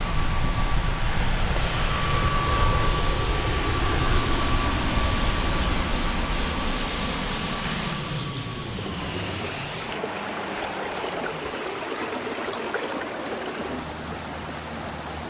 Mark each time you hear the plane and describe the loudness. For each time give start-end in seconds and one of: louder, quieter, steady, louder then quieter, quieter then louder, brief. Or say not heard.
0.0-15.2 quieter.